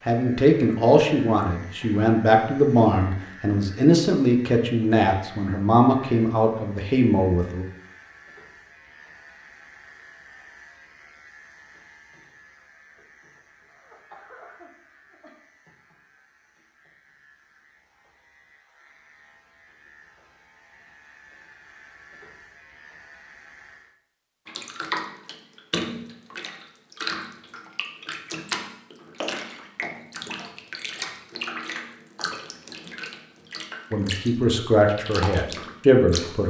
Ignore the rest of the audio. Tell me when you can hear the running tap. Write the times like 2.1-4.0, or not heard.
24.4-36.4.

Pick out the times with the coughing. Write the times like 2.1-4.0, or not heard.
13.6-15.3.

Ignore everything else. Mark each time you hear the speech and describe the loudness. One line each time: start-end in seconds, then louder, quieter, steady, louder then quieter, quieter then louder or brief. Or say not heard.
0.1-7.7 steady
33.9-36.4 brief.